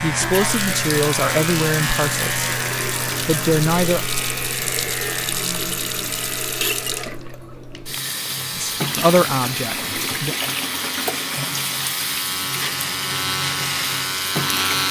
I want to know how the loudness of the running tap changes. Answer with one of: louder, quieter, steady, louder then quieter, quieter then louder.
steady.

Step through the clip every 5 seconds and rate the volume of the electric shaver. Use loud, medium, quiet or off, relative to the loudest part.
loud, medium, loud.